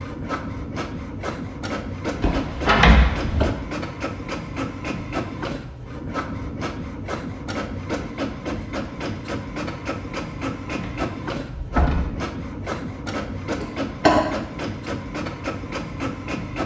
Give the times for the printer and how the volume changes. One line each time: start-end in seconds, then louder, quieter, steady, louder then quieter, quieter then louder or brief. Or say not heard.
0.0-16.6 steady.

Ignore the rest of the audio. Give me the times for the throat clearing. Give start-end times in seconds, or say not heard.
13.6-14.2.